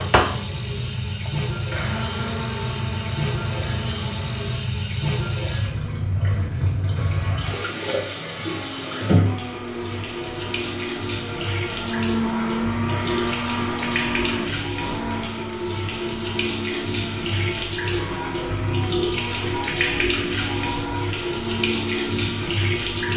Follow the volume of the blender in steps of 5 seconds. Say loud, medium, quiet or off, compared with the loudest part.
loud, medium, loud, medium, medium.